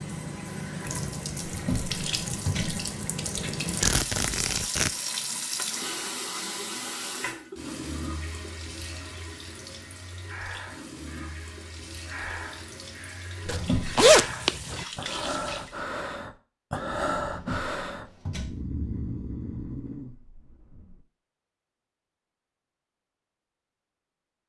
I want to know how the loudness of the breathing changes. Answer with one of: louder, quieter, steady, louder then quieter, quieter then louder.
louder then quieter.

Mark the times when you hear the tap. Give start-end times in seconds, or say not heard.
0.0-15.8.